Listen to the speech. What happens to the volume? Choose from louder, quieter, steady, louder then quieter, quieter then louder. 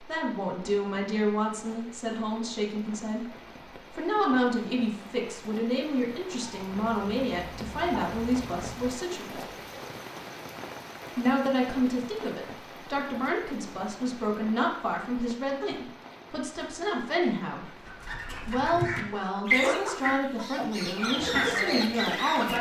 steady.